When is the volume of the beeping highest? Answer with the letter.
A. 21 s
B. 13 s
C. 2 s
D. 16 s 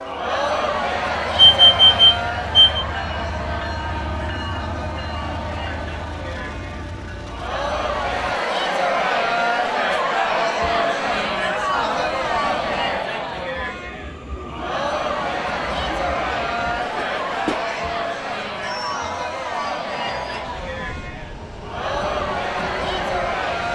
C.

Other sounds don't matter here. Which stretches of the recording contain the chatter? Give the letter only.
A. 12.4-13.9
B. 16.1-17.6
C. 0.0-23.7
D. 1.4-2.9
C.